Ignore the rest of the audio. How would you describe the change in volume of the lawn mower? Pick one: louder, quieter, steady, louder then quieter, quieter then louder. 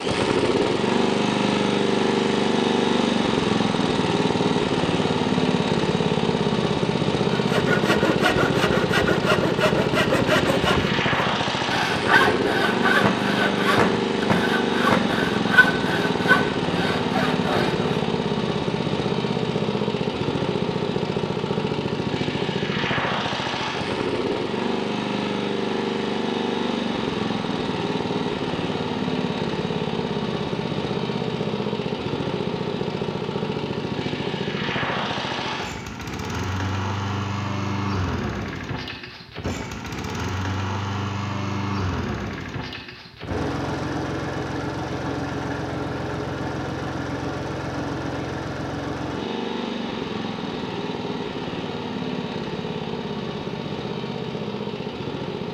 quieter.